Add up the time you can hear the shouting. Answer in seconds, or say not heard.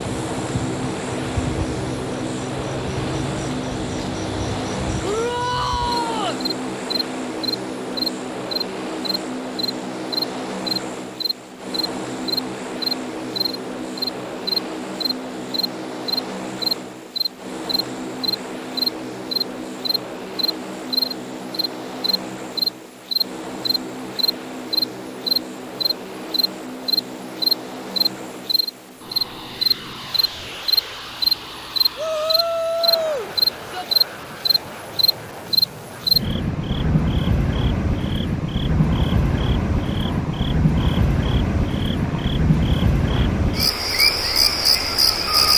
3 s.